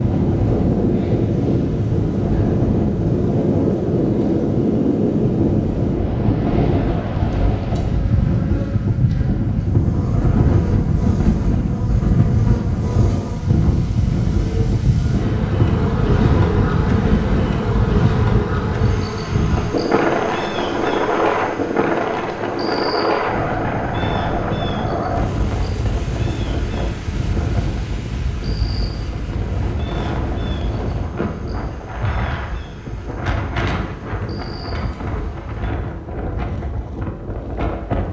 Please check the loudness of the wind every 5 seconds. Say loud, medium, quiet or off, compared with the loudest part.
loud, loud, loud, loud, loud, medium, medium, medium.